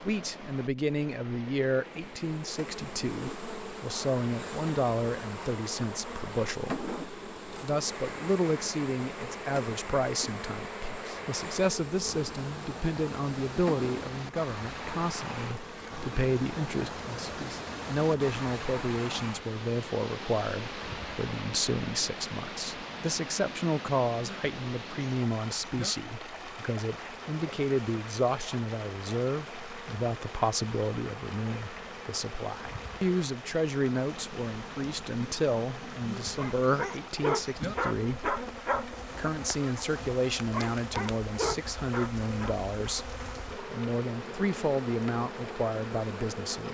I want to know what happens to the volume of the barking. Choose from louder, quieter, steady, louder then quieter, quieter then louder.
quieter then louder.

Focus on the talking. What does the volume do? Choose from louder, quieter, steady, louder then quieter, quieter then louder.
steady.